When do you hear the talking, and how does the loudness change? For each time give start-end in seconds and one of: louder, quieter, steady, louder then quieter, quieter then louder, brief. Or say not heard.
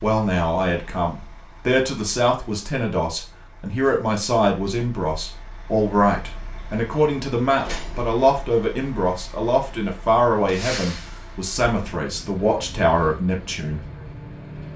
0.0-13.8 steady.